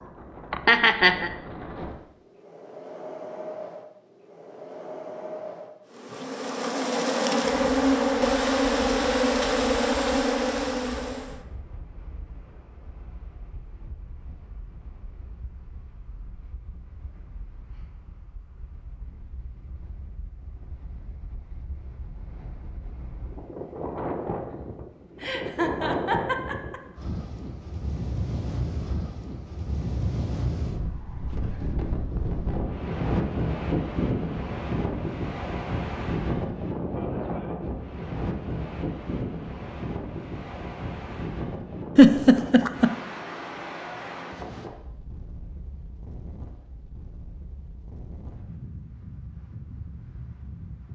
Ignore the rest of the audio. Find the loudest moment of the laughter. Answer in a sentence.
The volume of the laughter peaks at 42 seconds.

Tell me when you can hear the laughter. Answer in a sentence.
The laughter can be heard from 0.5 to 1.3 s, from 25.2 to 26.8 s and from 42.0 to 43.0 s.